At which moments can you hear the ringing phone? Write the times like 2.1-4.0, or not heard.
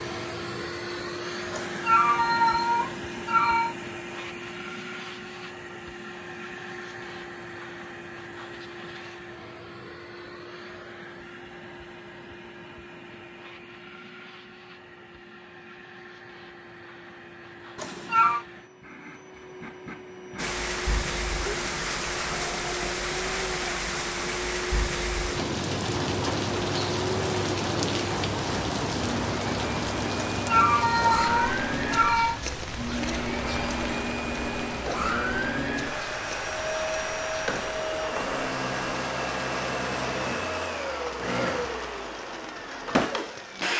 not heard.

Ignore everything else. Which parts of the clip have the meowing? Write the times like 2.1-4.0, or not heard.
1.5-3.8, 17.8-18.4, 30.4-32.4.